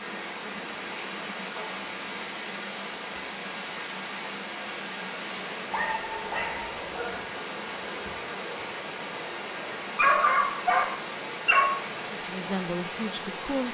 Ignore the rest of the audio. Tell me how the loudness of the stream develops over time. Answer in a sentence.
The loudness of the stream stays about the same.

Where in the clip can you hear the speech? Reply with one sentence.
You can hear the speech from 12.1 to 13.6 s.